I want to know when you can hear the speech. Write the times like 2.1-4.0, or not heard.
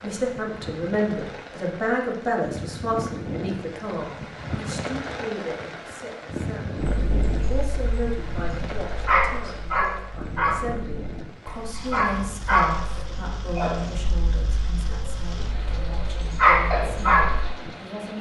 0.0-18.1.